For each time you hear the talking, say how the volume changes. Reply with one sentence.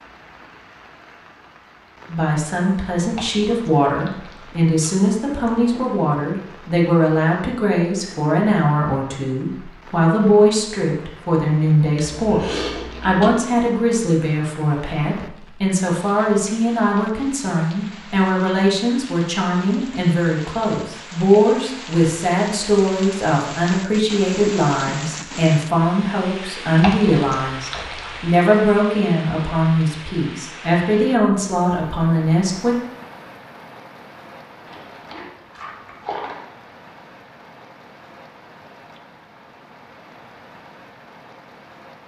You can hear the talking from 2.0 to 32.8 s, at a steady volume.